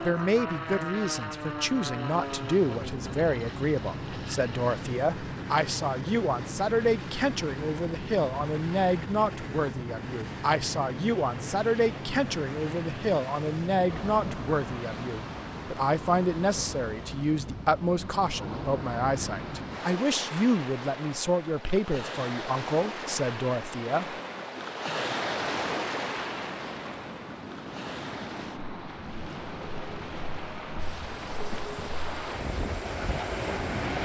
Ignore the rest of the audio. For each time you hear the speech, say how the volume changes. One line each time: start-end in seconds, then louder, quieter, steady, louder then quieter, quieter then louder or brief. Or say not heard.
0.0-24.1 steady.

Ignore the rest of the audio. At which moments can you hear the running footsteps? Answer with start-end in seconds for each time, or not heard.
not heard.